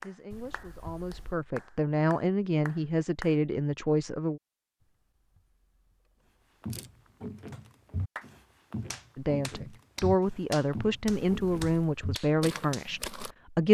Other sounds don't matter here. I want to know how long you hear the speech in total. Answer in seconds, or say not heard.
9 s.